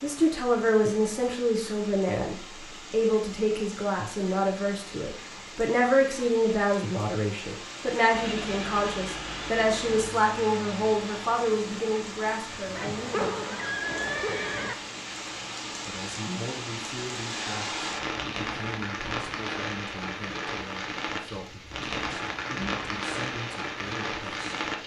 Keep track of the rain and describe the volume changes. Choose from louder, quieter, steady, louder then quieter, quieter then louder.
louder.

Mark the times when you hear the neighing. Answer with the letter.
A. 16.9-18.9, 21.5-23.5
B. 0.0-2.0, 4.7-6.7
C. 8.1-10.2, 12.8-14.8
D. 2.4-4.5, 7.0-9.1
C.